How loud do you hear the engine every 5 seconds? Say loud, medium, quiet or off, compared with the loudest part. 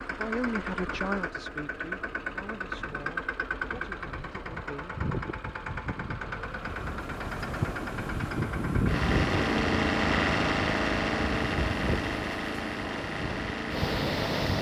medium, loud, loud.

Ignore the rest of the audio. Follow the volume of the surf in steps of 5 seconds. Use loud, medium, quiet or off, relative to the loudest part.
off, loud, loud.